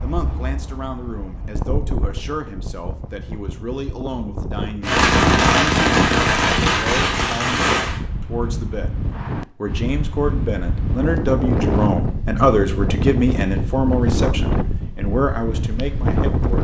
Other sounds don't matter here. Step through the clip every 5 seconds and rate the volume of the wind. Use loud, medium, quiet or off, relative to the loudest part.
medium, medium, loud, loud.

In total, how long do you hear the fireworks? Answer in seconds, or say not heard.
3 s.